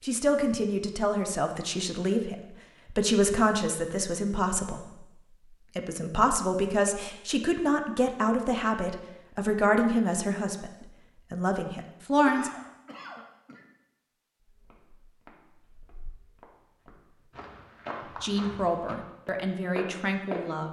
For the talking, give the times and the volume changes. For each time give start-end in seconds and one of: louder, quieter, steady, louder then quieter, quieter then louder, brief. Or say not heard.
0.0-12.5 steady
18.1-20.6 brief.